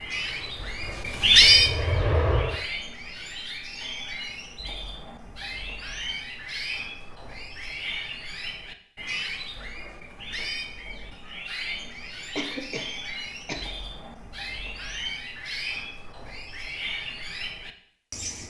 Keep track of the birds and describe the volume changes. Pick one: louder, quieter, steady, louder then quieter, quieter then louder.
quieter.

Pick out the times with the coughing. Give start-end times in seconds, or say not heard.
12.3-13.7.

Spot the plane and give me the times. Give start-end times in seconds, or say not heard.
0.1-2.6.